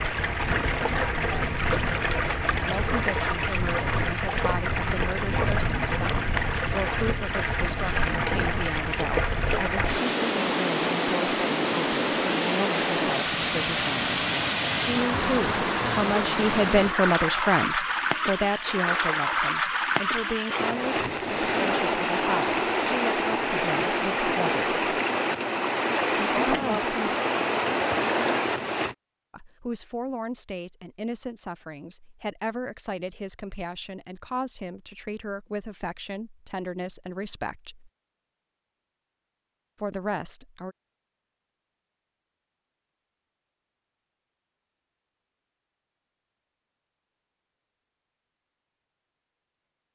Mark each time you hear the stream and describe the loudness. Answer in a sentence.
You can hear the stream from 0.0 to 28.9 s, at a steady volume.